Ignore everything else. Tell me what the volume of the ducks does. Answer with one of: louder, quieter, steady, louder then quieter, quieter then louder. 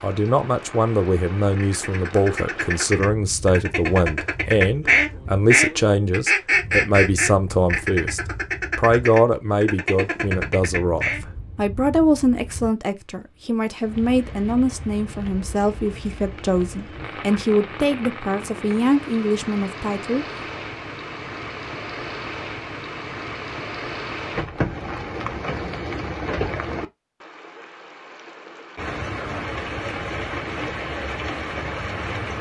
louder then quieter.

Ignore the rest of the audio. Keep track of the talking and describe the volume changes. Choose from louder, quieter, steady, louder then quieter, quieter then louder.
steady.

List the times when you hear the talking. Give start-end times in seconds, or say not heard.
0.0-20.2.